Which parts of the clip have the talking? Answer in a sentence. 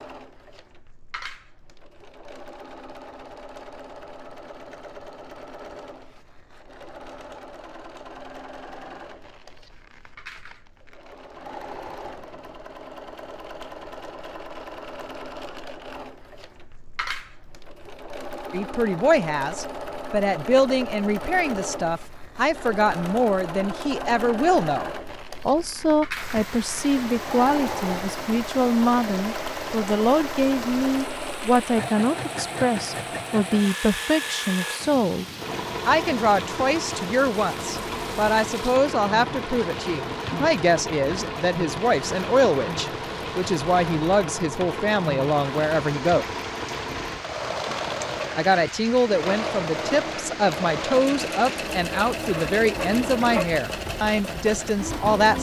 You can hear the talking from 18.5 to 35.2 s, from 35.9 to 46.2 s and from 48.4 to 55.3 s.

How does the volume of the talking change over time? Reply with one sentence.
The loudness of the talking stays about the same.